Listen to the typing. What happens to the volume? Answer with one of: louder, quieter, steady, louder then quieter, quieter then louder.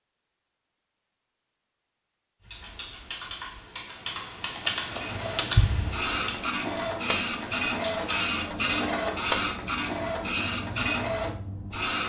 louder then quieter.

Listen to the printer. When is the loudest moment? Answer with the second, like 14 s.
9 s.